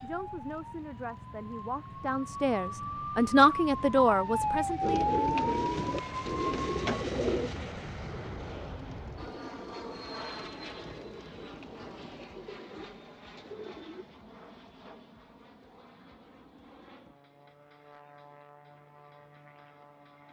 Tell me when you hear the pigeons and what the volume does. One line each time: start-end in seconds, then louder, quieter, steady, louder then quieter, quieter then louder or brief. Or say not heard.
4.8-14.1 quieter.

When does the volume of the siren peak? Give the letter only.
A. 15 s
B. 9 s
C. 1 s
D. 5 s
D.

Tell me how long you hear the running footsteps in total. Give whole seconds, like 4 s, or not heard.
not heard.